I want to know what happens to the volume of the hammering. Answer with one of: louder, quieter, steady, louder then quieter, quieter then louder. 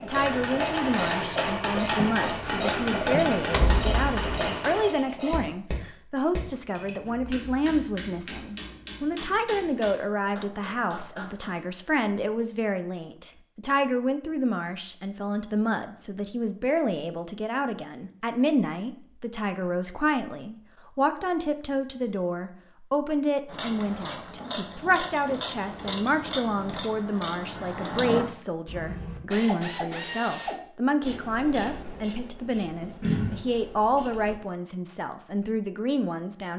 quieter.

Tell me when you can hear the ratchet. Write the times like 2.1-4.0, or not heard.
0.0-5.6, 23.4-34.4.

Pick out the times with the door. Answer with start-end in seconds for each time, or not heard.
3.5-4.5.